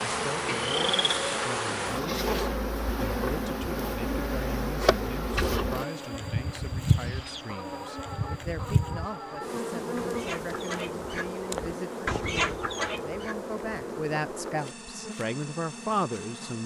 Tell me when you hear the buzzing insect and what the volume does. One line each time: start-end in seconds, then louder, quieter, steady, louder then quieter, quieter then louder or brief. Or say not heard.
0.0-16.6 quieter.